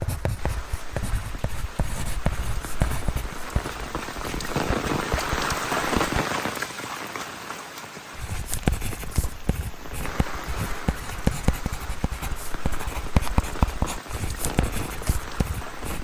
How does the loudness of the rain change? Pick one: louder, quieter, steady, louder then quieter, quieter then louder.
louder then quieter.